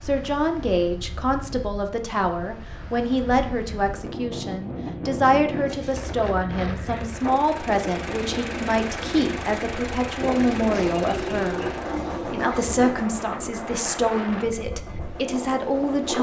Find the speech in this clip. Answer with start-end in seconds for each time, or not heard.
0.0-11.6, 12.2-16.1.